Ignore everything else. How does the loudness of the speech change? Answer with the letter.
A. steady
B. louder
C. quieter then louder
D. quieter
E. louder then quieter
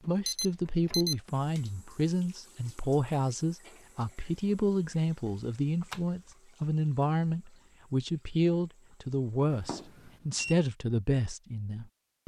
A.